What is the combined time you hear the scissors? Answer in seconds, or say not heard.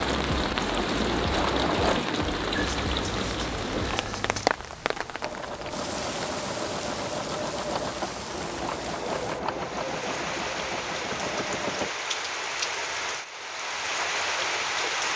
2 s.